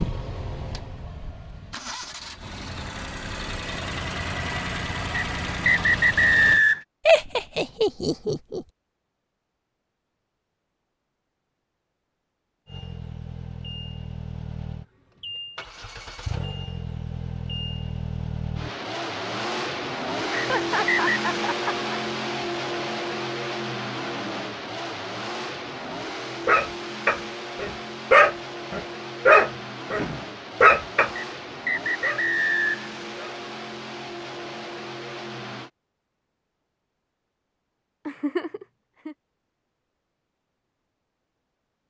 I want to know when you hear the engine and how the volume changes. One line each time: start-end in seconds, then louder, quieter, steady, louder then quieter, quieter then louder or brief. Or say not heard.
0.0-6.7 louder
12.7-35.7 louder then quieter.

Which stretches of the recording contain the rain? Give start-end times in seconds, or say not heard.
not heard.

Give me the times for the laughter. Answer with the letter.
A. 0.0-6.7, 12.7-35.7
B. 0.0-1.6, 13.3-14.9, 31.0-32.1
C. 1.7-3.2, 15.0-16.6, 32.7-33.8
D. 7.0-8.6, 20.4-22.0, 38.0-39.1
D.